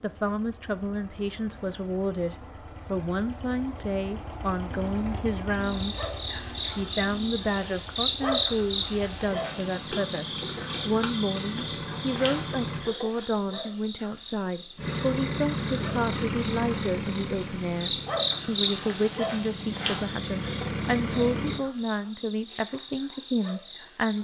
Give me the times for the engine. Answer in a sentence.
The engine can be heard from 0.0 to 12.9 s and from 14.8 to 21.6 s.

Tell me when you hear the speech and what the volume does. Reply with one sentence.
You can hear the speech from 0.0 to 6.1 s, at a steady volume; and from 6.8 to 24.1 s, at a steady volume.